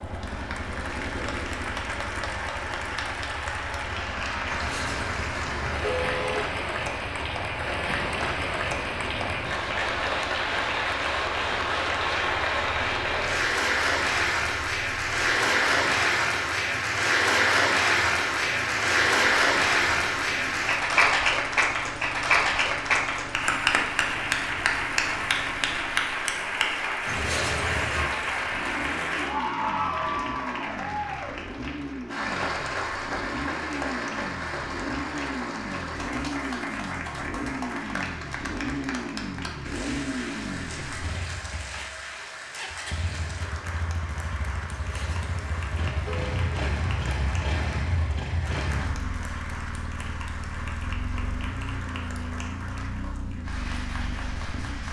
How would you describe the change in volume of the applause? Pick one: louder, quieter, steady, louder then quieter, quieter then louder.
louder then quieter.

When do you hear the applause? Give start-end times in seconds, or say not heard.
0.0-54.8.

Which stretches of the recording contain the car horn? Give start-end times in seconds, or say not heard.
4.5-6.5, 27.1-28.1, 44.7-46.5.